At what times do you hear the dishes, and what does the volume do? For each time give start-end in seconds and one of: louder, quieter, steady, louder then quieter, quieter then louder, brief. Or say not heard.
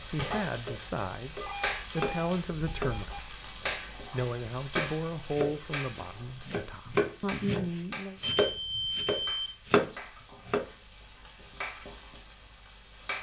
not heard.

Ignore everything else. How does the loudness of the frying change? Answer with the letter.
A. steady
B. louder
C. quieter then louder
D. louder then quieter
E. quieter
E.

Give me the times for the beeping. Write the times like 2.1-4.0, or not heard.
1.4-3.2, 8.2-9.7.